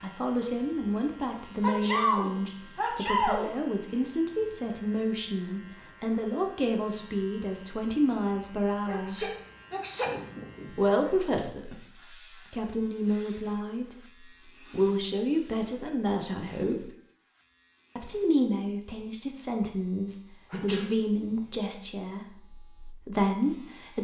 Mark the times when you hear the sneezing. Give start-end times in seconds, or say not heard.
1.6-3.5, 8.8-10.8, 20.5-21.4.